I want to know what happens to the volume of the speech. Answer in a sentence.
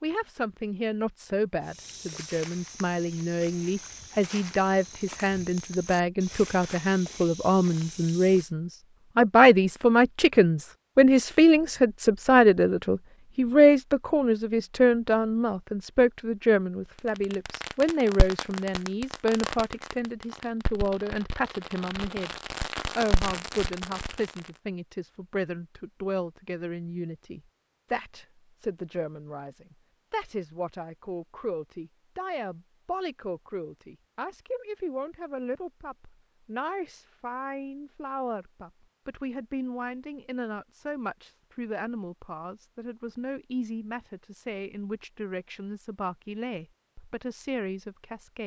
The loudness of the speech goes down.